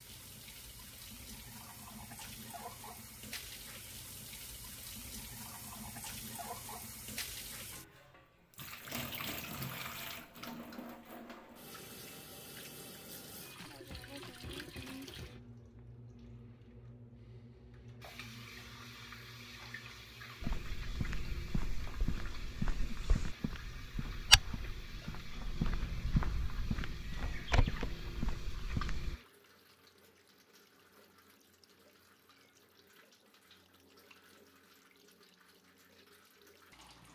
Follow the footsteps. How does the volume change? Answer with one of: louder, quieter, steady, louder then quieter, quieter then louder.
louder then quieter.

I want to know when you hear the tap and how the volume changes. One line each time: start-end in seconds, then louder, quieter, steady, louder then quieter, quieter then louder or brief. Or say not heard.
0.0-37.1 quieter.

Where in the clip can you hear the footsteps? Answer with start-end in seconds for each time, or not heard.
20.4-29.1.